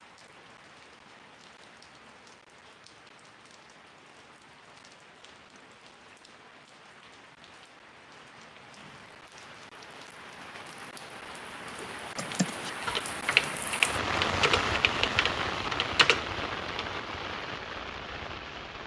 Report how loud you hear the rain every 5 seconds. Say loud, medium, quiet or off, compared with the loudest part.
quiet, quiet, loud, loud.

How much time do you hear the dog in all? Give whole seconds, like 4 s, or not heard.
not heard.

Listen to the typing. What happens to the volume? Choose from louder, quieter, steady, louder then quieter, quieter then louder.
louder then quieter.